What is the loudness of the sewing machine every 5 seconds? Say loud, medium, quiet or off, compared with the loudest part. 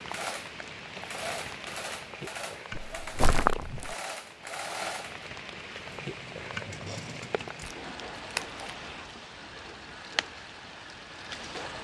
loud, medium, medium.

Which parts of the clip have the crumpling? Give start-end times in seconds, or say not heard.
2.7-4.0, 7.6-8.6.